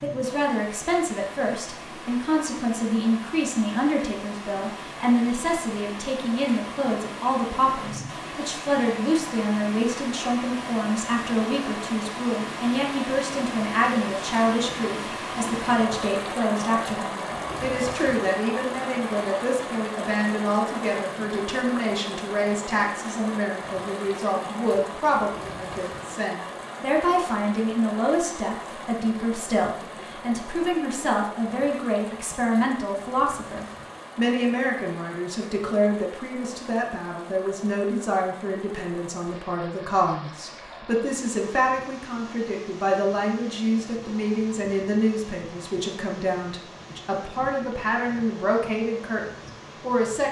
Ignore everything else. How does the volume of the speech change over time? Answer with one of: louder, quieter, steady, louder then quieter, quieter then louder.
steady.